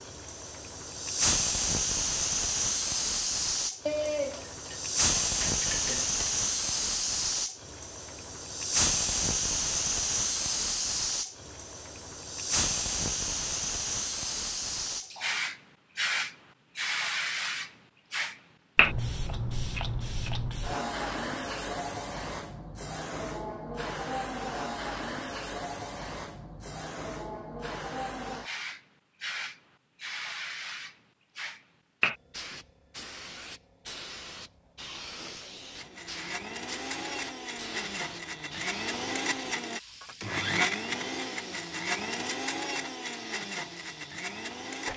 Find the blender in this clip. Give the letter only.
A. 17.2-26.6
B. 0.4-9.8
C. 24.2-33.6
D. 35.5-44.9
D.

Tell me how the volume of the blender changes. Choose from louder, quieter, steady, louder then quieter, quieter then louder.
louder then quieter.